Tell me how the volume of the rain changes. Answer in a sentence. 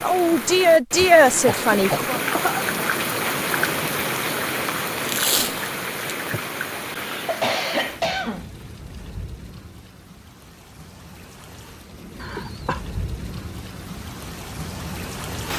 The loudness of the rain goes down, then up.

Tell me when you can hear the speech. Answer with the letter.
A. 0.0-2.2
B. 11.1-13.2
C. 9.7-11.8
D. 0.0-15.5
A.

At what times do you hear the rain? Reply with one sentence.
You can hear the rain from 0.0 to 15.5 s.